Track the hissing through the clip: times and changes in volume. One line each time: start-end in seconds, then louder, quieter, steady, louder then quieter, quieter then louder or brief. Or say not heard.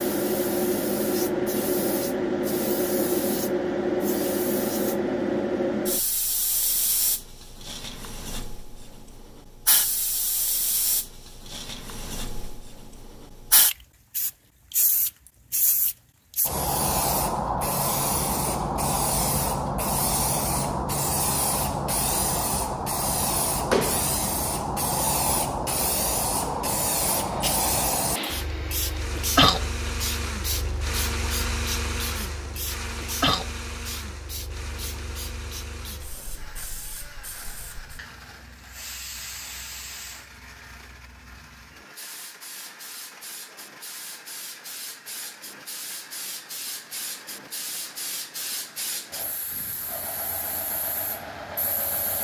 0.0-52.2 quieter.